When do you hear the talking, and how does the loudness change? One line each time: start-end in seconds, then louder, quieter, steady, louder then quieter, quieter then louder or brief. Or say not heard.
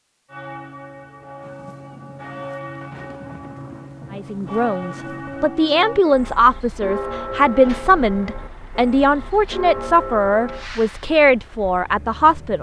4.2-12.5 steady.